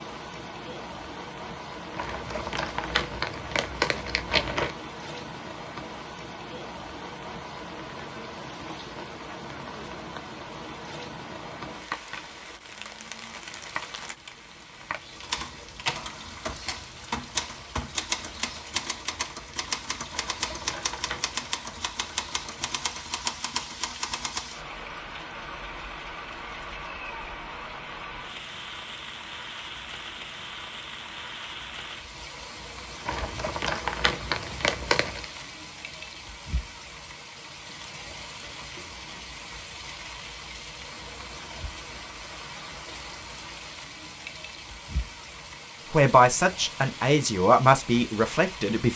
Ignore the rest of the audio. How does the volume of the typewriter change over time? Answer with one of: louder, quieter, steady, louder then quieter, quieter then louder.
steady.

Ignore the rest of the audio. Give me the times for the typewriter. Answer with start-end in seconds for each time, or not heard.
15.2-24.6.